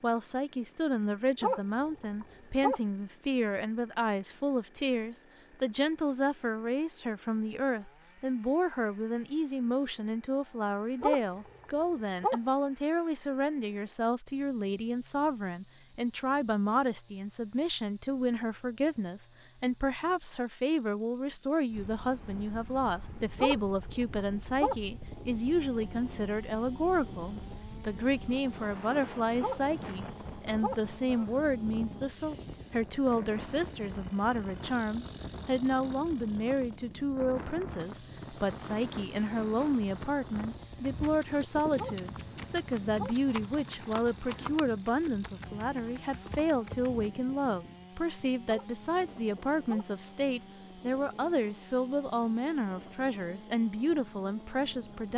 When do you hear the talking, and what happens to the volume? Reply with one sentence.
The talking can be heard from 0.0 to 55.1 s, at a steady volume.